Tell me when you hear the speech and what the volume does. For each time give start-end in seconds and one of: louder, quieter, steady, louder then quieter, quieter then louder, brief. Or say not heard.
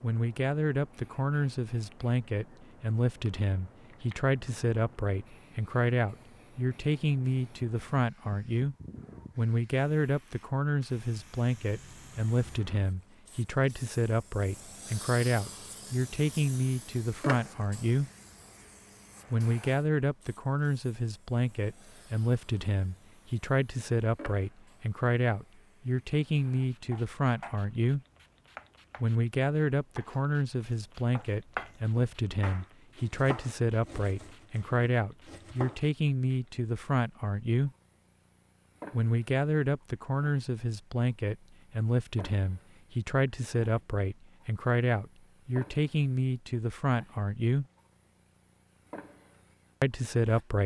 0.0-8.8 steady
9.3-18.1 steady
19.3-28.0 steady
29.0-37.7 steady
38.9-47.6 steady
49.8-50.6 brief.